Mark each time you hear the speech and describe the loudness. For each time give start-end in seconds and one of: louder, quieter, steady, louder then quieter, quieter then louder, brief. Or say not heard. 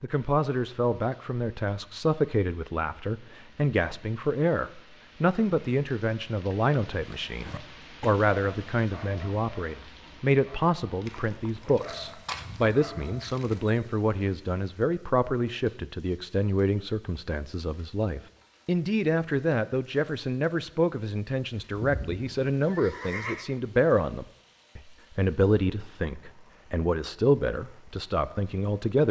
0.0-29.0 steady.